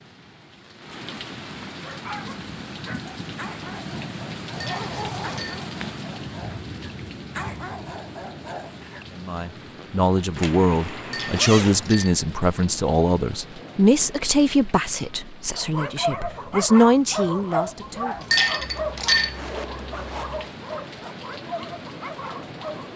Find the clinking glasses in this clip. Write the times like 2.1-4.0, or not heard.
4.5-5.7, 11.1-12.2, 18.2-19.4.